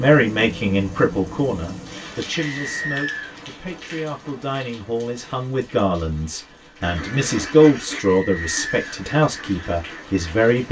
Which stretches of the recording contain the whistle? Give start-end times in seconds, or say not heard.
2.3-3.4, 8.0-8.9.